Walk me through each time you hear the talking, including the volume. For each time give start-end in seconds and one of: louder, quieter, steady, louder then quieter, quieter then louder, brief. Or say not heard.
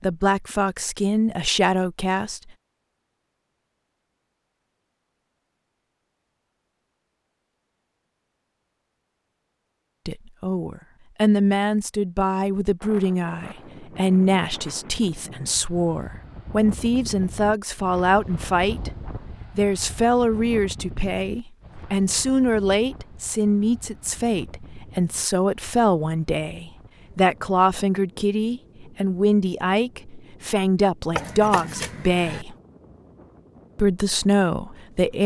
0.0-2.5 brief
10.1-32.5 steady
33.8-35.2 brief.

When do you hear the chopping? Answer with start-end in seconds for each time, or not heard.
31.1-32.5.